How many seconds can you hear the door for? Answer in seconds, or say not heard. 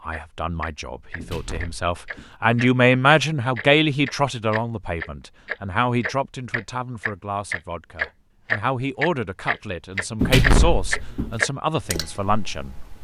2 s.